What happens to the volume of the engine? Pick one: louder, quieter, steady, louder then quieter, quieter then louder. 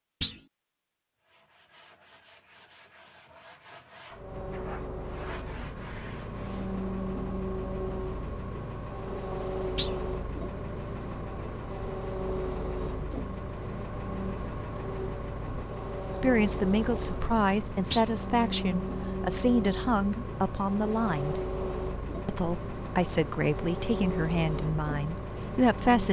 steady.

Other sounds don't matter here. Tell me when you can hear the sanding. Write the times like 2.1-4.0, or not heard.
1.2-6.8.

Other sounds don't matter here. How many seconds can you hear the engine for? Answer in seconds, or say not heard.
22 s.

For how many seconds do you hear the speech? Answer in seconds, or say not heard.
9 s.